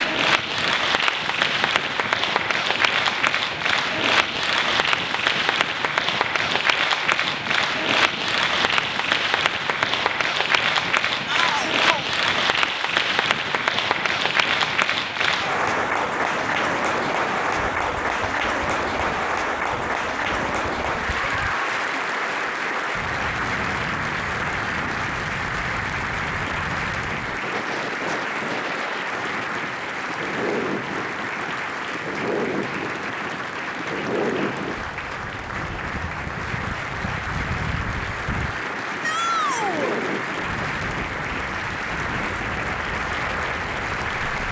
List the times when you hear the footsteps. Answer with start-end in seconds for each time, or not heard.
not heard.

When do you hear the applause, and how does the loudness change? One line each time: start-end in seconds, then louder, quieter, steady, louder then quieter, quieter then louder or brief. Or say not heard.
0.0-44.4 quieter.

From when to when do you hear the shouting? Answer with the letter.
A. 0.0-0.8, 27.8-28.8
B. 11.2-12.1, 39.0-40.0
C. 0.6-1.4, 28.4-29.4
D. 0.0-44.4
B.